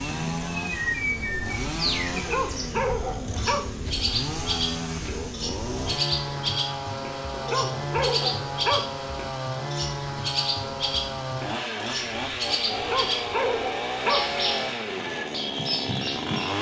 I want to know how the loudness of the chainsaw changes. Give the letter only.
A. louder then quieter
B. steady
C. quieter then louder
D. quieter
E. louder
B.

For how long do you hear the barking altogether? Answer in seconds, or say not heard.
5 s.